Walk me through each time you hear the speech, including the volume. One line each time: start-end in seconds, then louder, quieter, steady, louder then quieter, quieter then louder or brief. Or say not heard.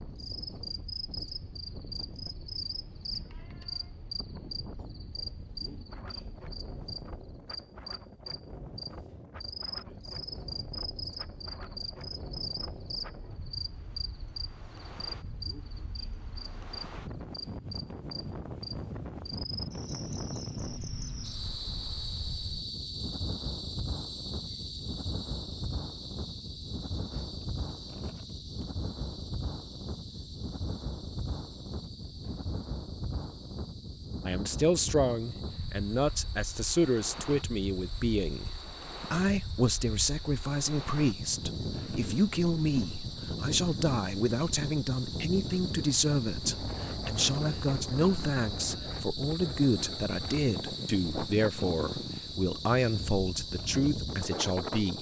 34.2-54.9 steady.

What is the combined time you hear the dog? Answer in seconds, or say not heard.
not heard.